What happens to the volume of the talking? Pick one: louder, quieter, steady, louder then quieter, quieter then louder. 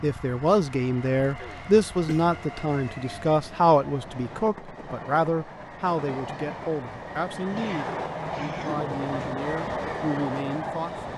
quieter.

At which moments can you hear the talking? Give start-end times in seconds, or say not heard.
0.0-11.1.